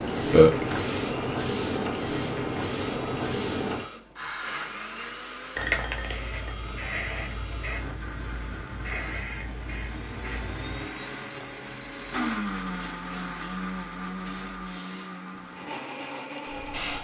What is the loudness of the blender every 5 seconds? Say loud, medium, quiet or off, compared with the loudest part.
medium, medium, loud, loud.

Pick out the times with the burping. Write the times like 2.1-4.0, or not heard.
0.3-0.8.